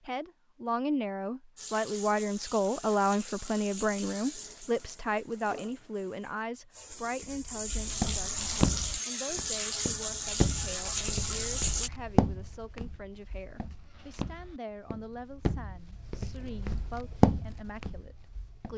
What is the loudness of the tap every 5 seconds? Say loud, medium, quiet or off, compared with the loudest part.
medium, loud, loud, off.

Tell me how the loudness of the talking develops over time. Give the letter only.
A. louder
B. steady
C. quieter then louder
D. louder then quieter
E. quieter
E.